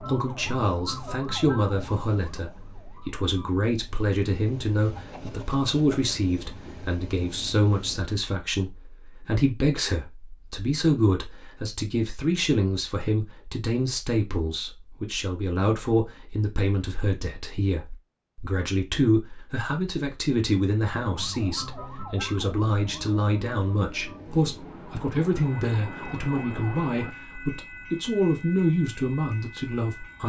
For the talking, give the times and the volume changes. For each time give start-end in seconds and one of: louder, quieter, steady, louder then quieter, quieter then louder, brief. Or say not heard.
0.0-30.2 steady.